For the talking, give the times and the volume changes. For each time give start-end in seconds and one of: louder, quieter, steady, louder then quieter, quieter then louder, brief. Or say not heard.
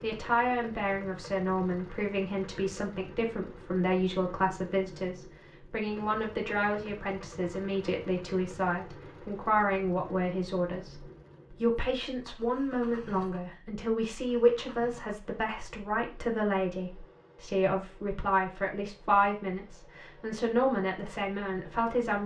0.0-22.2 steady.